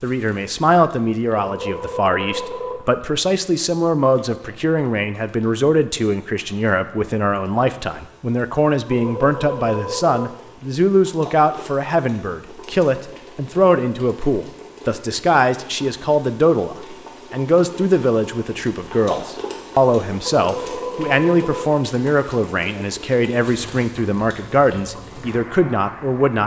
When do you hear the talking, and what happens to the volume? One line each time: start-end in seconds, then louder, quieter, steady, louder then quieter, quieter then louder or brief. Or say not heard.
0.0-26.4 steady.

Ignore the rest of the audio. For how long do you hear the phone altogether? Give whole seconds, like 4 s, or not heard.
4 s.